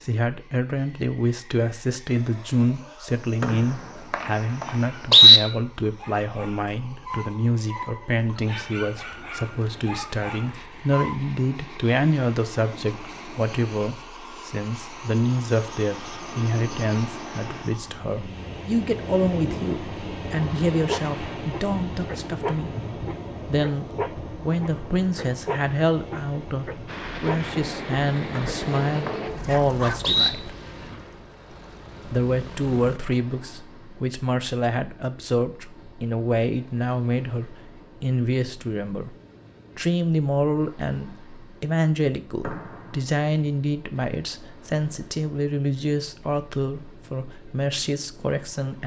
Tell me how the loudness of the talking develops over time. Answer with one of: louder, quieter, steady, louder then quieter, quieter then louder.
steady.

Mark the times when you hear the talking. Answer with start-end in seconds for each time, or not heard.
0.0-22.7, 23.4-30.5, 32.0-39.1, 39.8-48.8.